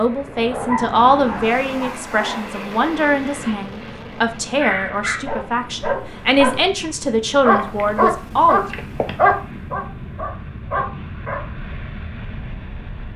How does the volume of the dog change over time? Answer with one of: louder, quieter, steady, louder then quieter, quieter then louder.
quieter then louder.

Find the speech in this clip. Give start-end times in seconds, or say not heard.
0.0-8.7.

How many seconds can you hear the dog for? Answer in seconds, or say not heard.
10 s.